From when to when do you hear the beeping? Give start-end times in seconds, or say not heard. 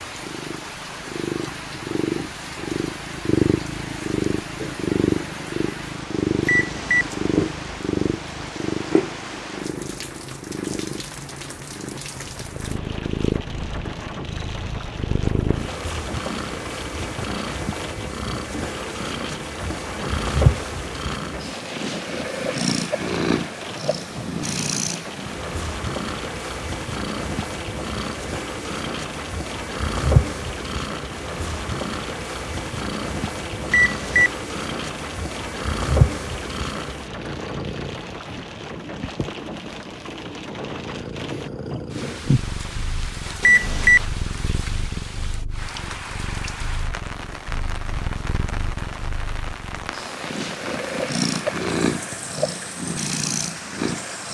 6.5-7.1, 33.7-34.4, 43.4-44.0.